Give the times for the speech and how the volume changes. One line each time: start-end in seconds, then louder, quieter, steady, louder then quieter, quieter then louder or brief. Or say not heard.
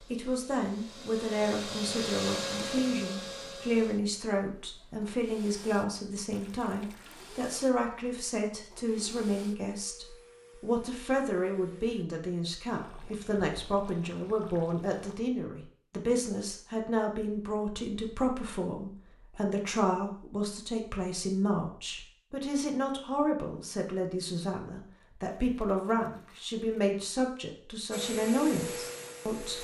0.1-29.5 steady.